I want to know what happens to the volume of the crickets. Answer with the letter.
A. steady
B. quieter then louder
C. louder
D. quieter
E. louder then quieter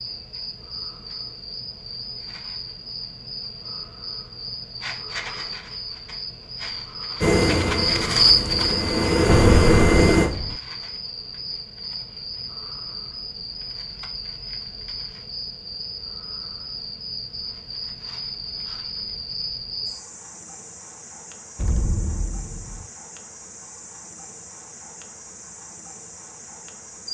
E.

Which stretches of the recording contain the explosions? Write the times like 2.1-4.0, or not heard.
9.2-10.6, 21.6-22.9.